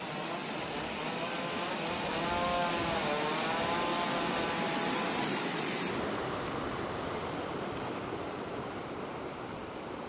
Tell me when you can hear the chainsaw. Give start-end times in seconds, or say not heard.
0.0-5.2.